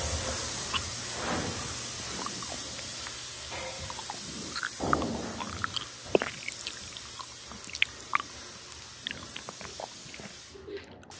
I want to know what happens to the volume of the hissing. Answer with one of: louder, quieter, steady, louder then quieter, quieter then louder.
quieter.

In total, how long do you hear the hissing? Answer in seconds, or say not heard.
11 s.